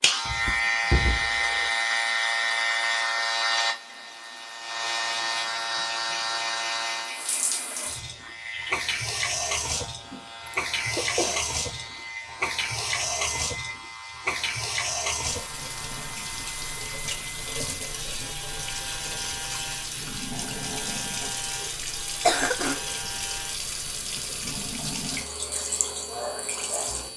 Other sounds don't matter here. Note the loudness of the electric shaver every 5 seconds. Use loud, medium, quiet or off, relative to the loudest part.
loud, medium, quiet, quiet, quiet, quiet.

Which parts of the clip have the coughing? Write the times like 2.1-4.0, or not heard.
0.2-1.7, 10.1-11.4, 22.2-22.8.